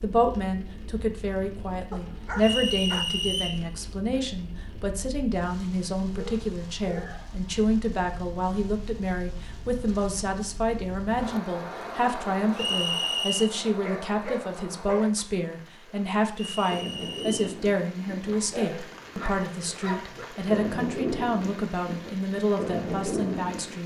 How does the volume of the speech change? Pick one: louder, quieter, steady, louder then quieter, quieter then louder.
steady.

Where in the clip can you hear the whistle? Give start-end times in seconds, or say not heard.
2.4-3.6, 12.6-13.5, 16.4-17.5.